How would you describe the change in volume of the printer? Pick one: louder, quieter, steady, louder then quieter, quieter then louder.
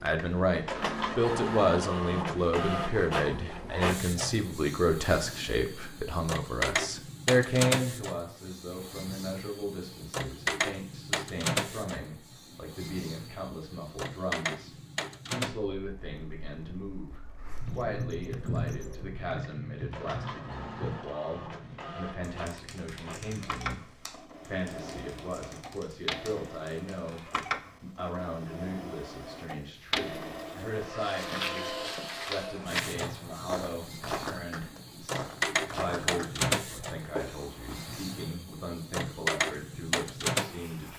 quieter then louder.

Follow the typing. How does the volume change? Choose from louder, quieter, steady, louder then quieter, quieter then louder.
quieter.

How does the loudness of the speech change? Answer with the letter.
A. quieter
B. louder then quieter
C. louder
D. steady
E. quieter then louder
A.